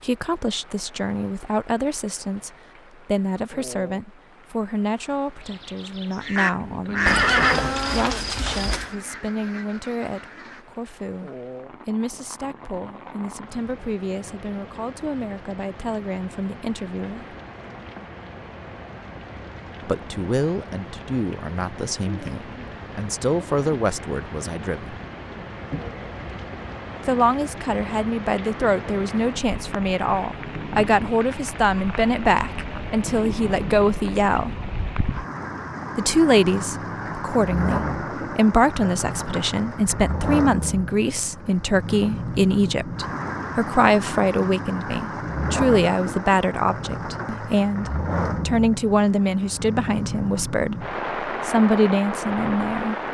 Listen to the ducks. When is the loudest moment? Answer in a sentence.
The volume of the ducks peaks at 7 seconds.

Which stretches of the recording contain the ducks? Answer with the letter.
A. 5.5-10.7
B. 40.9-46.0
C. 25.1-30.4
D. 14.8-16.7
A.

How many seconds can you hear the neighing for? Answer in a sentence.
You can hear the neighing for 2 seconds altogether.